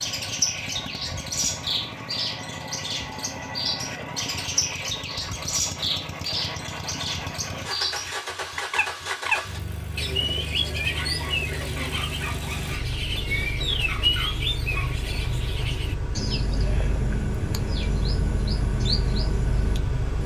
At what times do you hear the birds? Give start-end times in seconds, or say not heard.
0.0-20.2.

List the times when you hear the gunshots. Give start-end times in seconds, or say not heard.
not heard.